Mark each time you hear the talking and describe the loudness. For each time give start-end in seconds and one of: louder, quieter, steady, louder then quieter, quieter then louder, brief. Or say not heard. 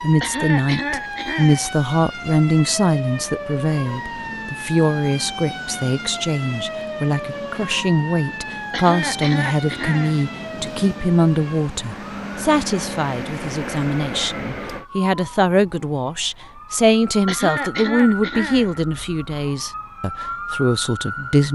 0.0-21.4 steady.